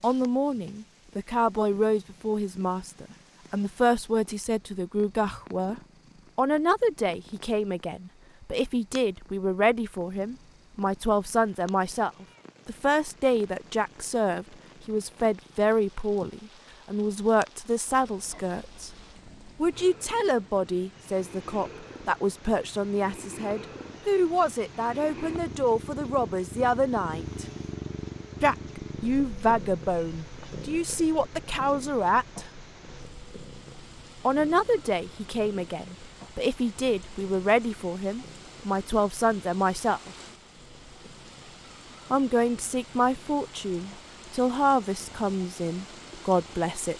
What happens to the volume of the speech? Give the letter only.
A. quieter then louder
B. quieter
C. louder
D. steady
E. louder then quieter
D.